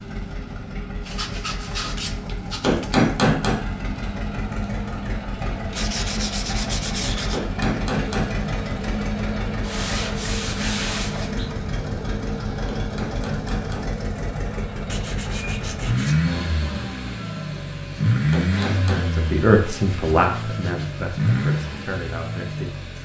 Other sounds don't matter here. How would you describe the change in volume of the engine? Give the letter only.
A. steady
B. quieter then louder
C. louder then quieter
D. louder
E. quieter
D.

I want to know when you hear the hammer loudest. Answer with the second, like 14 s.
3 s.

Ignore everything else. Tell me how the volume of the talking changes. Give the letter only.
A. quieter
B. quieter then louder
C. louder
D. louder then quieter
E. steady
A.